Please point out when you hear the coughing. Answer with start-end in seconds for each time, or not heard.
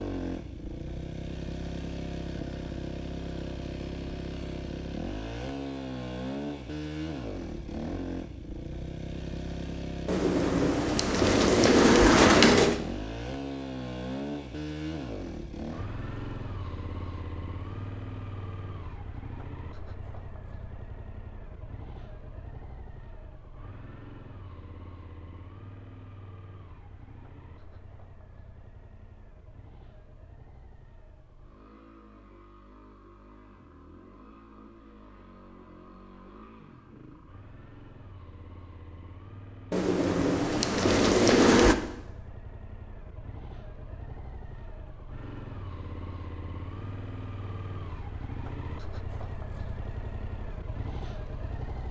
not heard.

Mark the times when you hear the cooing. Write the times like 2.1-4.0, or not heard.
10.1-12.8, 39.7-41.8.